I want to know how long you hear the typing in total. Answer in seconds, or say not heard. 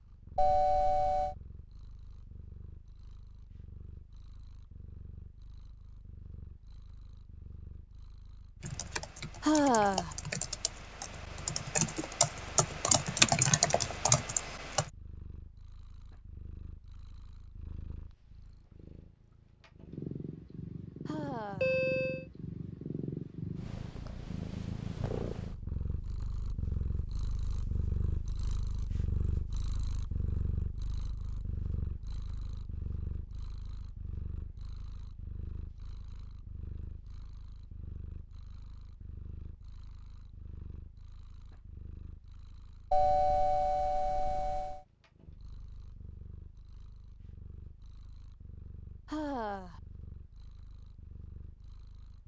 6 s.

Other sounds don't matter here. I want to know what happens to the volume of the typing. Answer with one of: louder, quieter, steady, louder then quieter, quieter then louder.
louder.